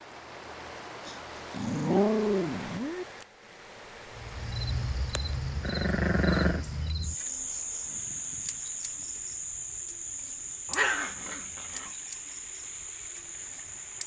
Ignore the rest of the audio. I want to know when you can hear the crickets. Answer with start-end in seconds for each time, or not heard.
4.2-14.0.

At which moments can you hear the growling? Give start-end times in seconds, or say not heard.
1.1-3.0, 5.6-6.7, 10.7-11.9.